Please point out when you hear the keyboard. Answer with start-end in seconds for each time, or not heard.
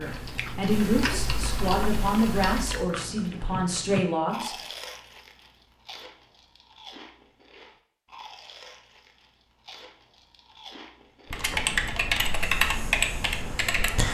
0.0-2.9, 11.3-14.0.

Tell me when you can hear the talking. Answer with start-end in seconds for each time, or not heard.
0.0-4.6.